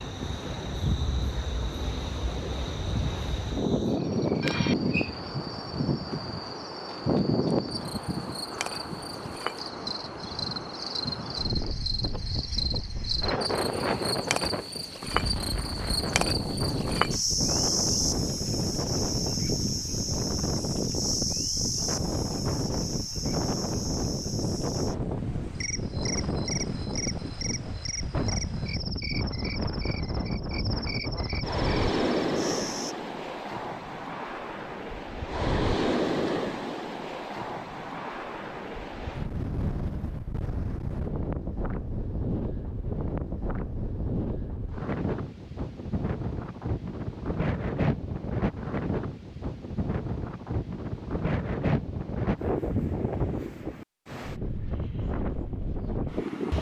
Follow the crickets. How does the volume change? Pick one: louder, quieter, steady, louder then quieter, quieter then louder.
louder then quieter.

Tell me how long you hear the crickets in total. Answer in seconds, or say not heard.
33 s.